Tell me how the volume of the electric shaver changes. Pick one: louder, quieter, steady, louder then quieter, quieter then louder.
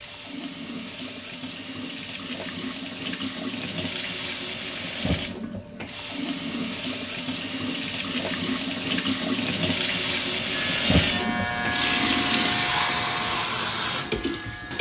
quieter.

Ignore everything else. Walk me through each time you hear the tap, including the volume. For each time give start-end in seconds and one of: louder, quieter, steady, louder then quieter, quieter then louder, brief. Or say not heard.
0.0-14.7 louder.